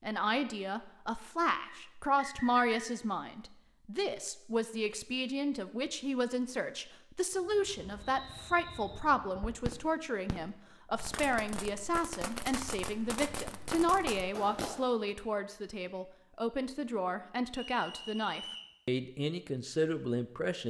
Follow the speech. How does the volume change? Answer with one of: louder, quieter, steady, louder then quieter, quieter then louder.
steady.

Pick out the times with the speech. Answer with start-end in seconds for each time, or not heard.
0.0-20.6.